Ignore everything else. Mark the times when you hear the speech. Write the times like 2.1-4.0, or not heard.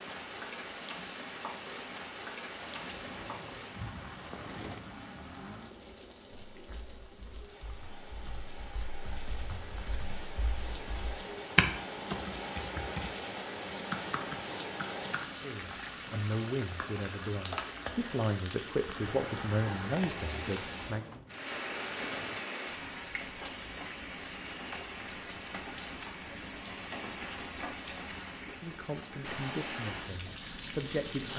15.4-21.2, 28.4-31.3.